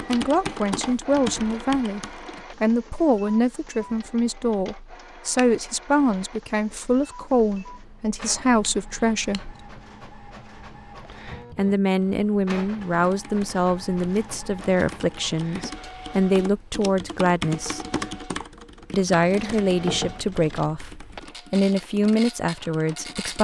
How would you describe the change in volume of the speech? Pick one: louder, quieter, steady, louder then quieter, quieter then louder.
steady.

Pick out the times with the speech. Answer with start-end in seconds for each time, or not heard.
0.0-9.6, 11.6-17.8, 18.9-23.4.